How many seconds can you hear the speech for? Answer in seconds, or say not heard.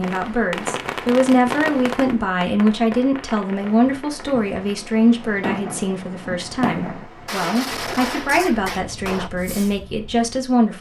11 s.